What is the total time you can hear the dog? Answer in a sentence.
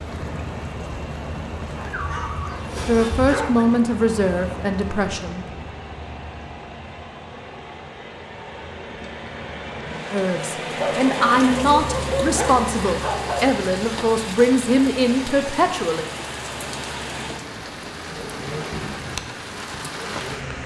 The dog can be heard for 5 seconds in total.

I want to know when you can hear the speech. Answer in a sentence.
The speech can be heard from 2.9 to 5.5 s and from 10.1 to 16.1 s.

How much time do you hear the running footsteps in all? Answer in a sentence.
You can't hear the running footsteps here.